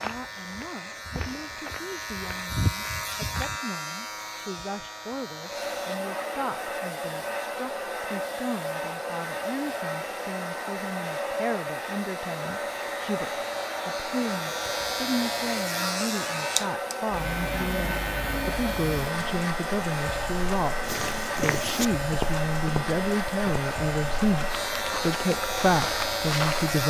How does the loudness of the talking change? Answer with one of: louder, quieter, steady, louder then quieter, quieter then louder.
louder.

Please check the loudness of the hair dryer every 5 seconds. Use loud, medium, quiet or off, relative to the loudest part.
quiet, loud, loud, loud, loud, loud.